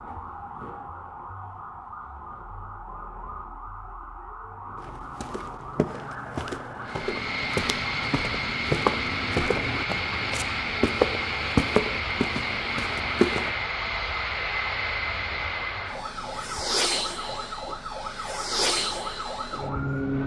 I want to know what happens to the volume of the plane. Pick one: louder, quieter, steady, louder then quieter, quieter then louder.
steady.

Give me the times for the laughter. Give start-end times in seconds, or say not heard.
not heard.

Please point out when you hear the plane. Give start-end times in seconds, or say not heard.
6.8-20.2.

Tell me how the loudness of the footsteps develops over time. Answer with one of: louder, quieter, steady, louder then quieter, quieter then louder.
louder.